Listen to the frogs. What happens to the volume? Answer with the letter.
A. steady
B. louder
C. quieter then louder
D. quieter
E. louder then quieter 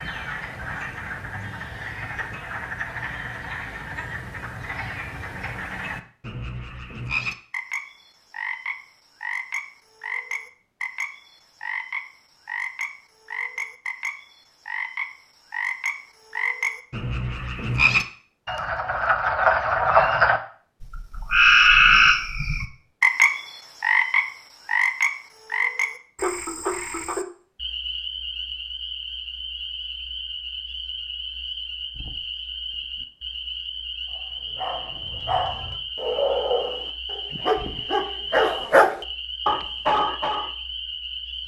E.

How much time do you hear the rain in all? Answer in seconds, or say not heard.
not heard.